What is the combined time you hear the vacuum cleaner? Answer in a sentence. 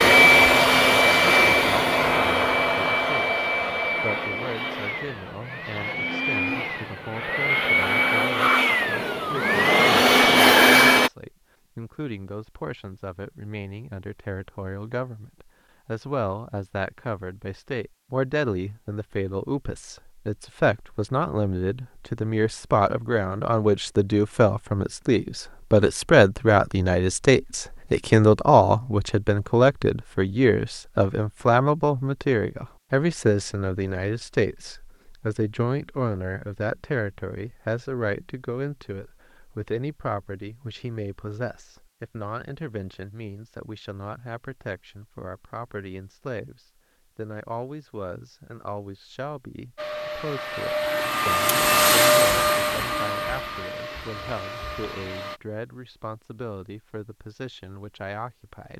You can hear the vacuum cleaner for 17 seconds altogether.